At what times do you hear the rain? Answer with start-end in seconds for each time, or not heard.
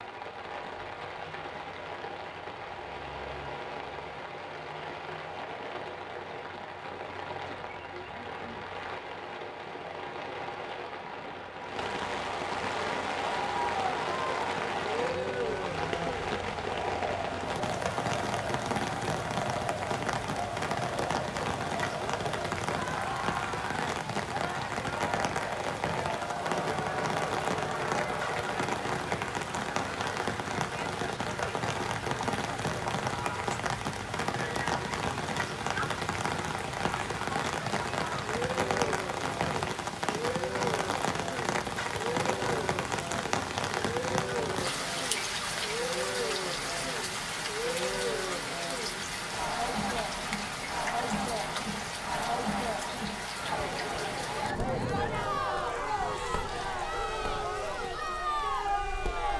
0.0-59.3.